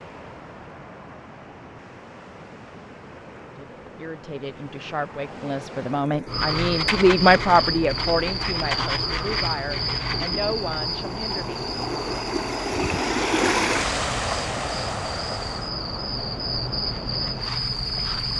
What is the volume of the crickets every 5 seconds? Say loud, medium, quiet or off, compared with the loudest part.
off, loud, medium, loud.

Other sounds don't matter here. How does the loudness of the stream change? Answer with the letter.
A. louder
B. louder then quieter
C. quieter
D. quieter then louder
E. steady
B.